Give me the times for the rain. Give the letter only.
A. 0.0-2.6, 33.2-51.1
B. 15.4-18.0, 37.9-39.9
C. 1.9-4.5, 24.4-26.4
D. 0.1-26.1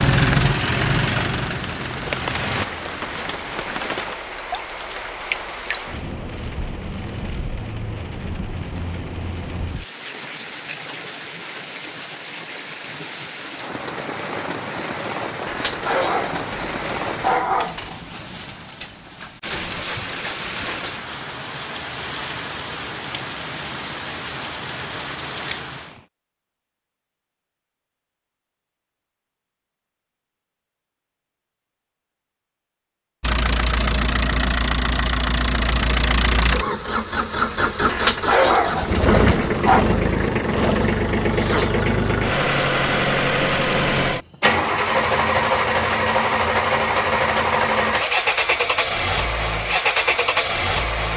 D.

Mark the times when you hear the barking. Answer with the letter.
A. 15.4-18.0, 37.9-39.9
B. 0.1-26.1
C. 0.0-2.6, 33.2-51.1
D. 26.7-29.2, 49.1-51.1
A.